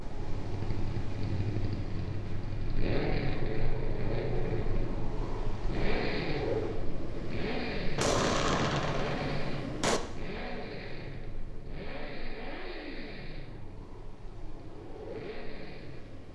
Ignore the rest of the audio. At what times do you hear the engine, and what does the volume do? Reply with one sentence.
The engine can be heard from 0.0 to 16.3 s, getting quieter.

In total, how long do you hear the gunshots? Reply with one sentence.
The gunshots can be heard for 2 seconds in total.